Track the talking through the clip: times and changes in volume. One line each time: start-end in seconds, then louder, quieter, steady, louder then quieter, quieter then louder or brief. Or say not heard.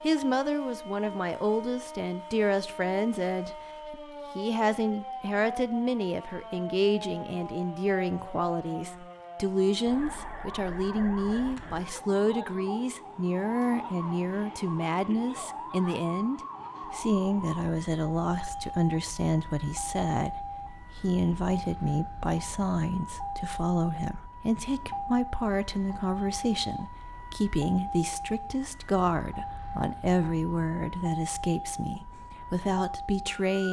0.0-33.6 steady.